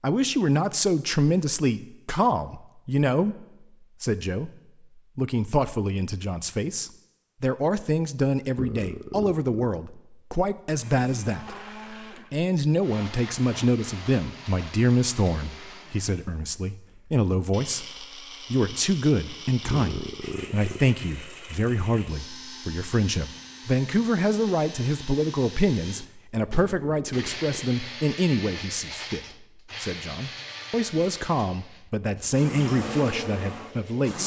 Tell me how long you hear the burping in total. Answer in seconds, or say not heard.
3 s.